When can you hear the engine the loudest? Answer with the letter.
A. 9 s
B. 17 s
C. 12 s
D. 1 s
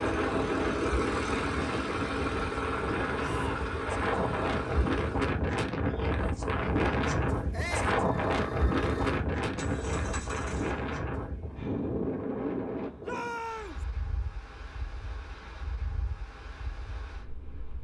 D.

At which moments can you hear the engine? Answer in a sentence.
You can hear the engine from 0.0 to 5.3 s and from 7.9 to 10.9 s.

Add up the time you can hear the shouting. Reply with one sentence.
You can hear the shouting for 2 seconds altogether.